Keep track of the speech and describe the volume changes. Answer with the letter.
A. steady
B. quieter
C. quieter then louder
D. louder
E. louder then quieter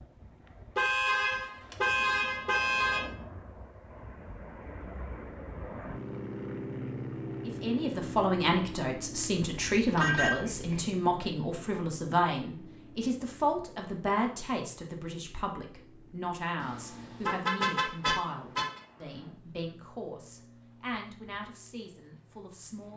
B.